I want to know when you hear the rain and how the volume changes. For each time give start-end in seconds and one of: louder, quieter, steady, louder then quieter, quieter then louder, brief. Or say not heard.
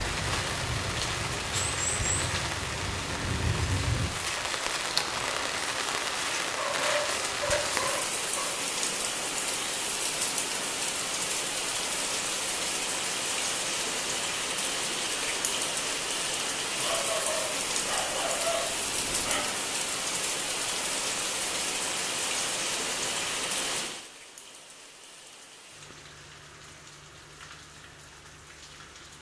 0.0-29.1 quieter.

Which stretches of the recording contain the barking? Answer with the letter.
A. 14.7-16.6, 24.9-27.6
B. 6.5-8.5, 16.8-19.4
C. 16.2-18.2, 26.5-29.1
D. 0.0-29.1
B.